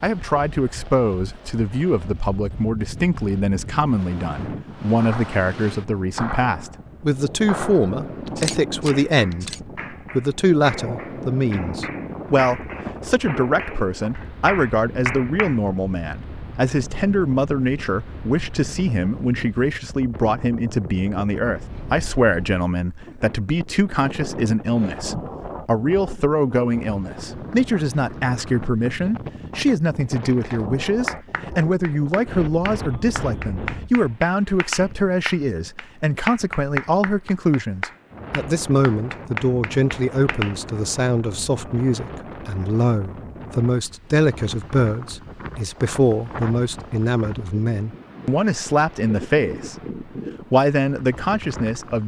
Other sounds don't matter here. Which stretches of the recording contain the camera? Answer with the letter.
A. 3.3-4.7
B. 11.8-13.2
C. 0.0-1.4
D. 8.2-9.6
D.